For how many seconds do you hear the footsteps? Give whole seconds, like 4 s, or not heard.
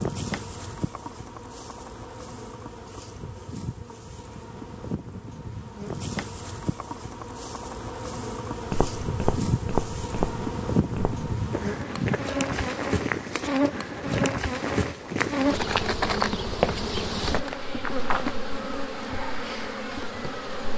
10 s.